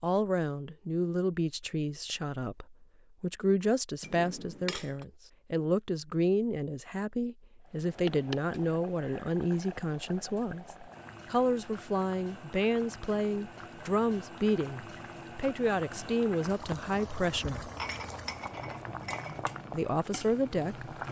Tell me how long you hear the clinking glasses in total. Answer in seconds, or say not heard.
3 s.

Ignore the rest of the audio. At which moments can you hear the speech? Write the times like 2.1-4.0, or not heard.
0.0-17.7, 19.7-20.9.